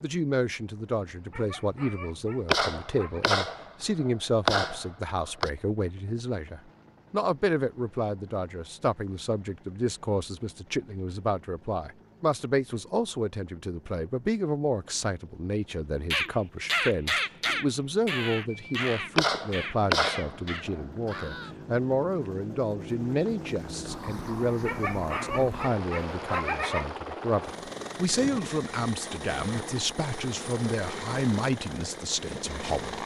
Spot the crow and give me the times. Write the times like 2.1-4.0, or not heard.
16.1-21.6.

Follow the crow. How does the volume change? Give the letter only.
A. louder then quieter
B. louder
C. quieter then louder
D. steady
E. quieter
E.